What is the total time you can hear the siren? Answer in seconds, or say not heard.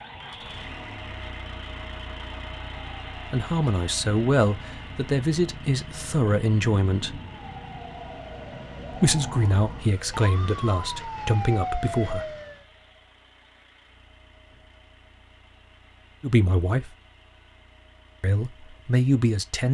13 s.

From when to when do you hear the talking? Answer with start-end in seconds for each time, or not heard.
3.2-7.2, 8.9-12.3, 16.2-16.9, 18.2-19.6.